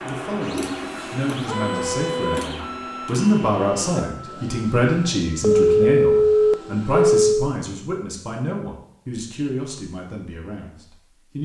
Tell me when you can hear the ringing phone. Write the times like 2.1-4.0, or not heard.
5.4-7.5.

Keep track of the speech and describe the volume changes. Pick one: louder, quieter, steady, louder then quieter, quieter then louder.
louder then quieter.